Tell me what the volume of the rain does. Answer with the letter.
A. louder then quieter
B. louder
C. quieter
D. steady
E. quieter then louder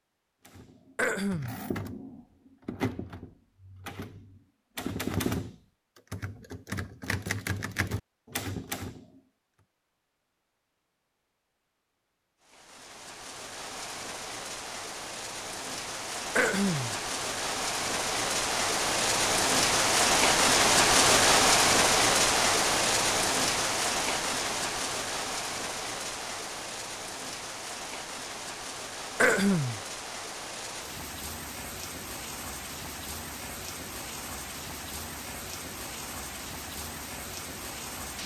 A.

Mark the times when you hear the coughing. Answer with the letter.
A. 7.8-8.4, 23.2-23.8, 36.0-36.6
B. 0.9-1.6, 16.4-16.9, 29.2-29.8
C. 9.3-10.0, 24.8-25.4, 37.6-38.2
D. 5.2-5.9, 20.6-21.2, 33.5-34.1
B.